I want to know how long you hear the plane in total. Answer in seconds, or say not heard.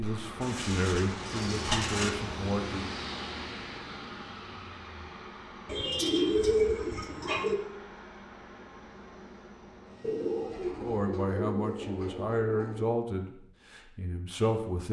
11 s.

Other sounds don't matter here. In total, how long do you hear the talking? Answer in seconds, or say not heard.
7 s.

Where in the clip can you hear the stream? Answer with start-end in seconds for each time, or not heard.
not heard.